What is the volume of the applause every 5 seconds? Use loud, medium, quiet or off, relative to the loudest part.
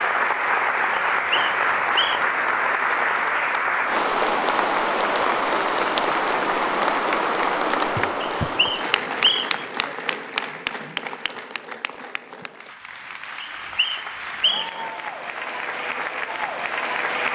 loud, loud, medium, medium.